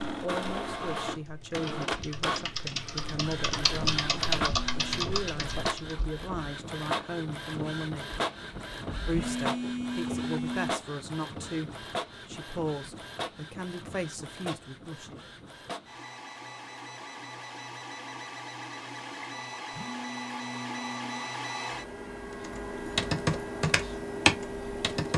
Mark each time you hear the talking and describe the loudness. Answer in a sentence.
The talking can be heard from 0.1 to 8.2 s, at a steady volume; and from 9.1 to 15.2 s, at a steady volume.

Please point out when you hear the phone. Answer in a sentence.
You can hear the phone from 4.5 to 5.0 s, from 9.1 to 10.8 s and from 19.7 to 21.2 s.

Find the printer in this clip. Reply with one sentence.
The printer can be heard from 0.0 to 25.1 s.